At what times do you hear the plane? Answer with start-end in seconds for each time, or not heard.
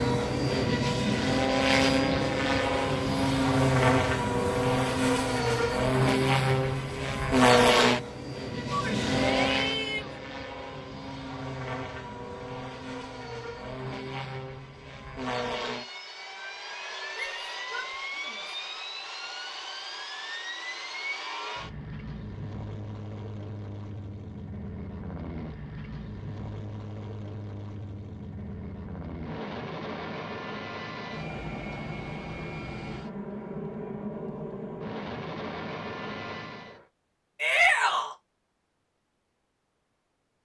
0.0-36.9.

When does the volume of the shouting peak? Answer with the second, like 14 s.
38 s.